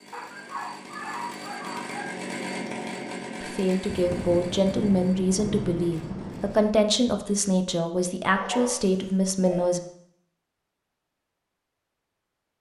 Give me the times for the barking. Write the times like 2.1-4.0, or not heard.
0.1-2.1, 8.3-9.8.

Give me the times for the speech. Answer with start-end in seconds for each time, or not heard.
3.4-9.9.